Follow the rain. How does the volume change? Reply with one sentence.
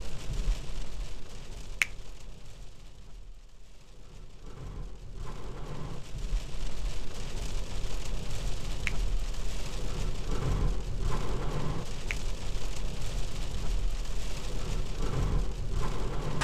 The volume of the rain goes up.